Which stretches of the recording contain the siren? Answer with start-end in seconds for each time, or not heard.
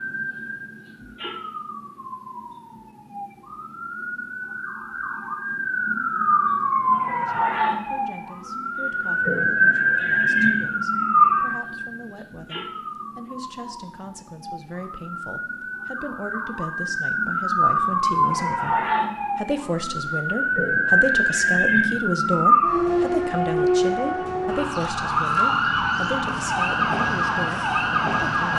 0.0-28.5.